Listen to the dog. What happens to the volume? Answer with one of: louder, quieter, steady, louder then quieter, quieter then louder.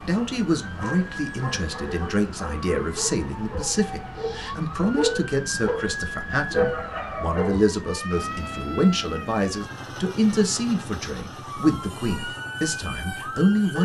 louder.